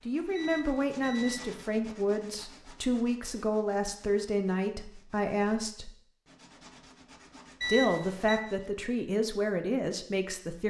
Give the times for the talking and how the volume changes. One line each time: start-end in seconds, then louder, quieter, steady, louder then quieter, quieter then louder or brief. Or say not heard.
0.1-5.9 steady
7.7-10.6 brief.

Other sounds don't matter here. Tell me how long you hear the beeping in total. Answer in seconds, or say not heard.
2 s.